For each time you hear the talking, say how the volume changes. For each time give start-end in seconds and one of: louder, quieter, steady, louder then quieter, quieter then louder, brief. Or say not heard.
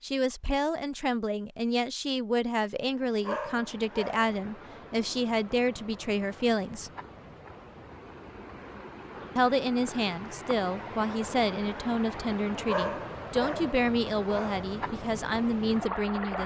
0.0-6.9 steady
9.3-16.4 steady.